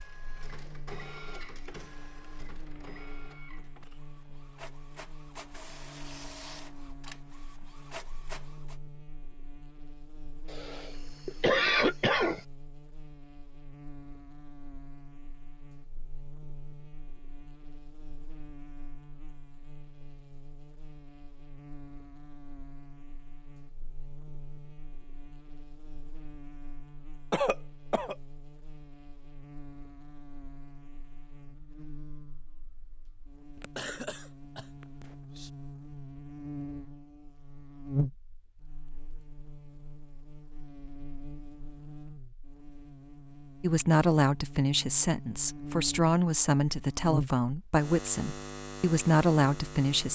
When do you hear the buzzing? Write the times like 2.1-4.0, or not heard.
0.0-50.1.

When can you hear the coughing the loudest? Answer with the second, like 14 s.
12 s.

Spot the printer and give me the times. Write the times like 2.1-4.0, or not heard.
0.0-8.8.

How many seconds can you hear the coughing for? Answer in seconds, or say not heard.
5 s.